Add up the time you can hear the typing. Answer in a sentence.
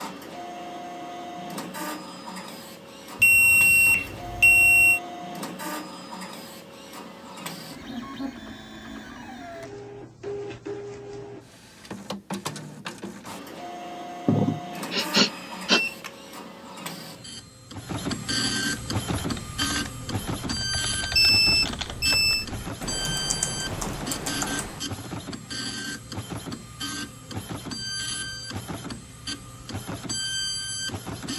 You can hear the typing for 6 seconds altogether.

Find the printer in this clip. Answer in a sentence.
You can hear the printer from 0.0 to 31.3 s.